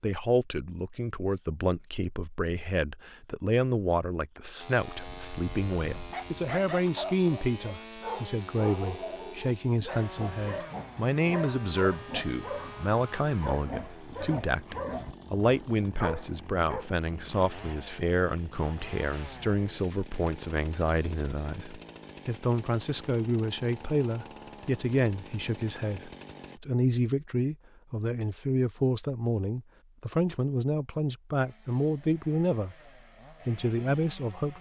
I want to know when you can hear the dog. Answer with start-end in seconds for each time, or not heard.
4.9-16.9.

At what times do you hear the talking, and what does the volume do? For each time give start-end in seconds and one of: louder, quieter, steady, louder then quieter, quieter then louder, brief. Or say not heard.
0.0-32.8 steady
33.5-34.5 brief.